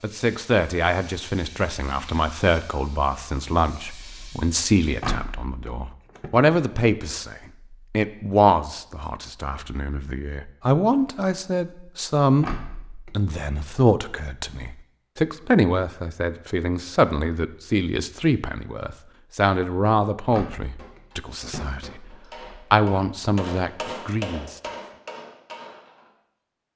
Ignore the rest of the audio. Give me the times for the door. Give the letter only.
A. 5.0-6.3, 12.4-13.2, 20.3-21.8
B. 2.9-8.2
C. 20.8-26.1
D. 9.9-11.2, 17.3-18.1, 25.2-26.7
A.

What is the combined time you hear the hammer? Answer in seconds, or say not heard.
5 s.